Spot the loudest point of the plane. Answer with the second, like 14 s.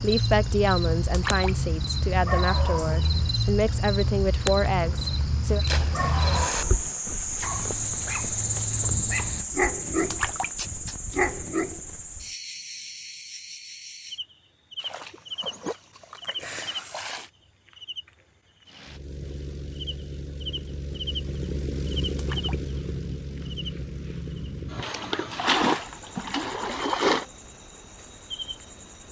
22 s.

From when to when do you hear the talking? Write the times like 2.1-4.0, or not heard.
0.0-5.6.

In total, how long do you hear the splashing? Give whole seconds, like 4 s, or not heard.
8 s.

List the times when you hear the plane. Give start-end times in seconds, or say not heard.
18.6-25.6.